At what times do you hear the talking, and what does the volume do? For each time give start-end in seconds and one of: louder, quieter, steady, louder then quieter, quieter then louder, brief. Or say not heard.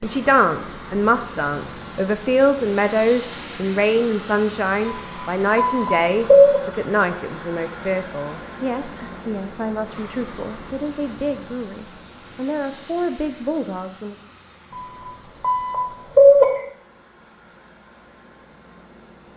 0.0-14.2 quieter.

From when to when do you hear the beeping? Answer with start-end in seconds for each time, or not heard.
4.8-6.6, 14.7-16.5.